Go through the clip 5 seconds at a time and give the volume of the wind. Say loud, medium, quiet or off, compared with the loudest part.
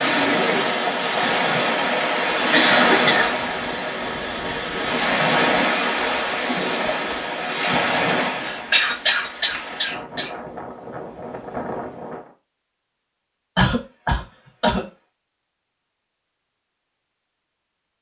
loud, loud, quiet, off.